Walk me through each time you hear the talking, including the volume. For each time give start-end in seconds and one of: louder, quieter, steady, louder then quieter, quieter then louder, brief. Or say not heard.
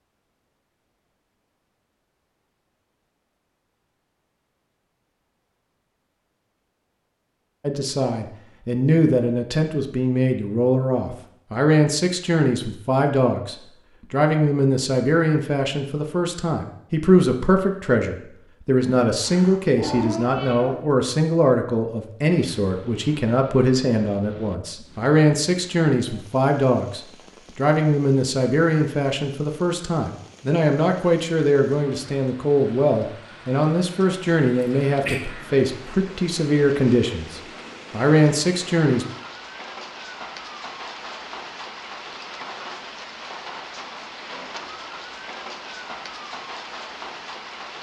7.6-39.0 steady.